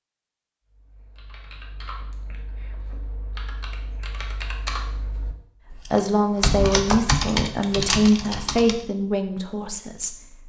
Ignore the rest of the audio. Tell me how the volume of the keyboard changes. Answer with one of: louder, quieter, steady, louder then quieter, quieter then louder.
louder.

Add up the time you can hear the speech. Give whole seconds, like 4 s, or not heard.
5 s.